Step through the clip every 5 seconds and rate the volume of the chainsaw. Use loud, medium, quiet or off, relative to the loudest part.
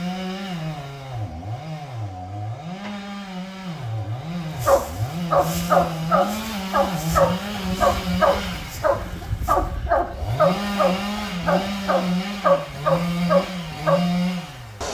medium, loud, loud.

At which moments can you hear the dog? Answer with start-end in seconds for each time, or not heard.
4.6-14.0.